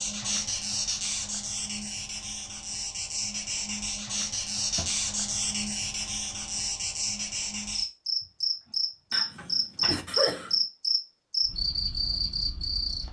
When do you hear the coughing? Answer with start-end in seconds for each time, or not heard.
9.1-10.6.